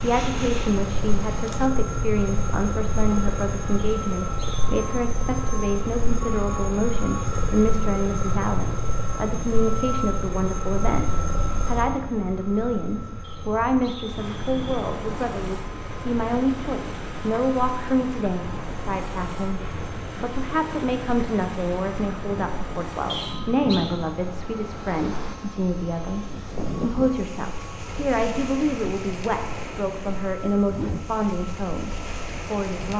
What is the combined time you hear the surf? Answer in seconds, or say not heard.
19 s.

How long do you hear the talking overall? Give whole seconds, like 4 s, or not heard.
33 s.